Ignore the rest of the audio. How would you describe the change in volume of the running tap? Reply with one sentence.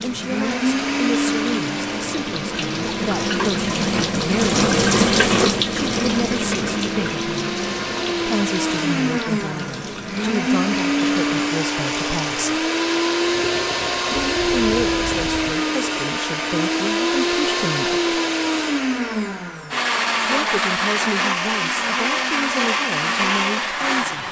The loudness of the running tap goes up, then down.